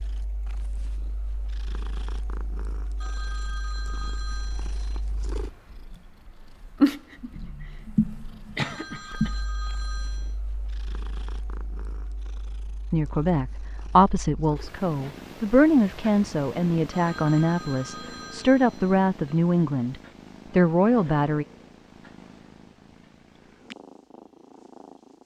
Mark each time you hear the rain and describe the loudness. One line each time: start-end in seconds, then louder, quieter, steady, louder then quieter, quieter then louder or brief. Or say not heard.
not heard.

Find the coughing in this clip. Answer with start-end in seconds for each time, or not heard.
8.6-9.3.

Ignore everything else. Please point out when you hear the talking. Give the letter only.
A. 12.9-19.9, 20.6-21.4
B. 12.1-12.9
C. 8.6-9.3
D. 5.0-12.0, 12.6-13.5
A.